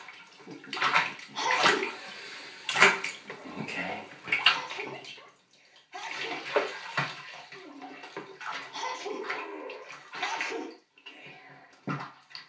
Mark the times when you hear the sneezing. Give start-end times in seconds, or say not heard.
1.3-2.0, 4.4-6.5, 8.7-10.8.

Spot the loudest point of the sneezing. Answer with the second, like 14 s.
2 s.